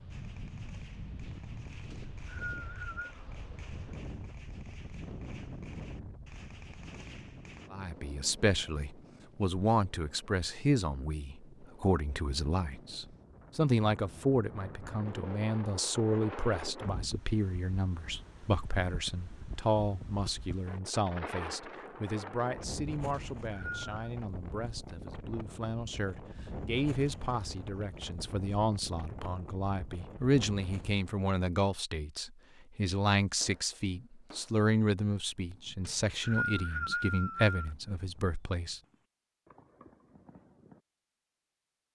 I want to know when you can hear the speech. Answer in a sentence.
You can hear the speech from 7.7 to 38.8 s.